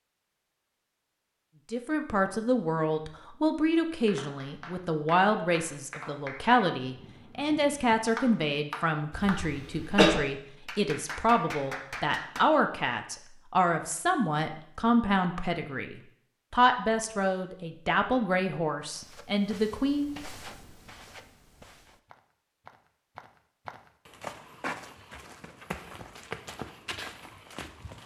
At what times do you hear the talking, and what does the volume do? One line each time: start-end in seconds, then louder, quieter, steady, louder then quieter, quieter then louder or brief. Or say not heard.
1.7-20.1 steady.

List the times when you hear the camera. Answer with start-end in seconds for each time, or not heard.
not heard.